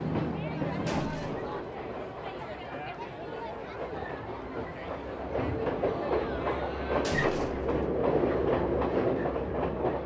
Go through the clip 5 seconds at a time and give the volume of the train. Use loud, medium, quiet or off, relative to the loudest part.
medium, loud.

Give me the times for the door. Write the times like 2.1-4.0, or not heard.
0.8-1.4, 7.0-7.8.